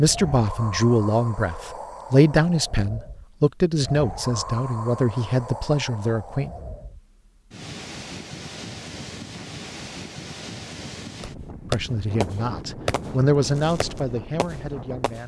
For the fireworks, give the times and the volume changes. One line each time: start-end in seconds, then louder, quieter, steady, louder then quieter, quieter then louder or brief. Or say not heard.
11.2-15.2 quieter then louder.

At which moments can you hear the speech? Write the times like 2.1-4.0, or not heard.
0.0-6.5, 11.7-15.2.